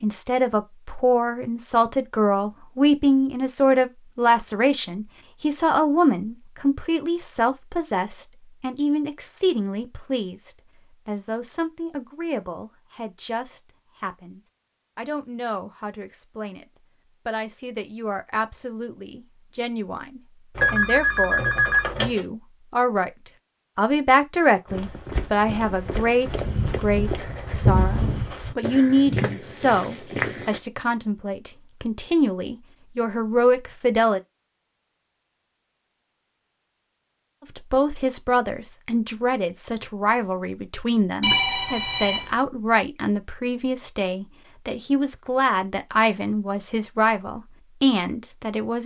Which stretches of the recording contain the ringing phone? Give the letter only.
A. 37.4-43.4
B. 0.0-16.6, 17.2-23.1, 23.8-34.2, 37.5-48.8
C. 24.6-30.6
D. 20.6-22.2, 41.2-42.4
D.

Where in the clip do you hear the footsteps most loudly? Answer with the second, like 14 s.
28 s.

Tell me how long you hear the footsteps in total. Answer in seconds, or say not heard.
6 s.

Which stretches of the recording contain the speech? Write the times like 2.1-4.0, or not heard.
0.0-16.6, 17.2-23.1, 23.8-34.2, 37.5-48.8.